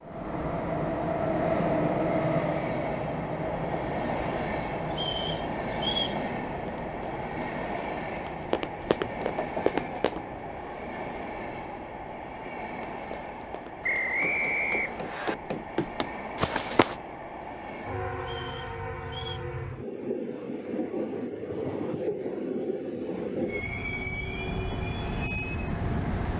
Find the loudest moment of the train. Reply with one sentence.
The volume of the train peaks at 2 seconds.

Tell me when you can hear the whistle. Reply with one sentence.
You can hear the whistle from 4.9 to 6.2 s, from 13.8 to 15.3 s and from 18.2 to 19.4 s.